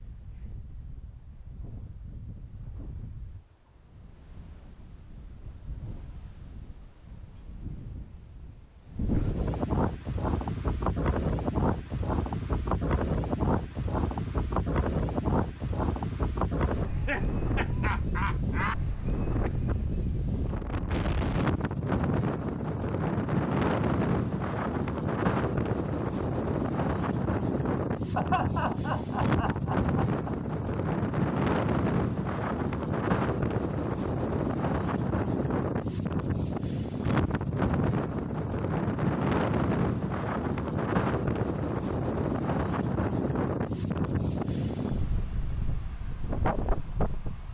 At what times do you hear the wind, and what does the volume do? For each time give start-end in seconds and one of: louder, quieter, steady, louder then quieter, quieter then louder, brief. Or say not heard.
0.0-47.4 louder.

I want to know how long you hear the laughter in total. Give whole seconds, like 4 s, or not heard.
4 s.